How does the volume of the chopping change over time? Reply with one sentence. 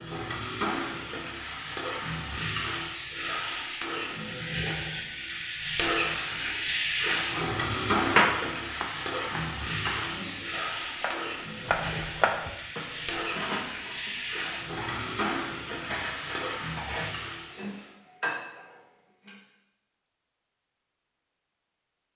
The loudness of the chopping goes down, then up.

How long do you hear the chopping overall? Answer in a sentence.
The chopping can be heard for 5 seconds in total.